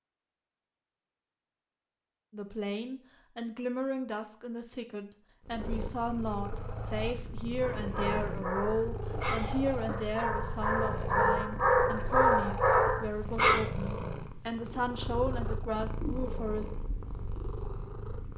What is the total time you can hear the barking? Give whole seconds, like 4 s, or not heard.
6 s.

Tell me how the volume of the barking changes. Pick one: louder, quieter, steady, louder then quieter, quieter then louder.
louder.